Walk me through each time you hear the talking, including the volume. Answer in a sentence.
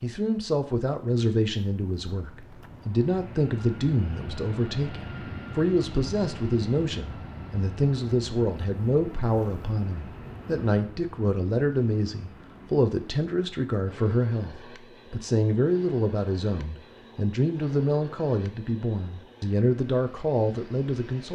The talking can be heard from 0.0 to 21.3 s, at a steady volume.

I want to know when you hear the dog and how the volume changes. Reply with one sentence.
The dog can't be heard in this clip.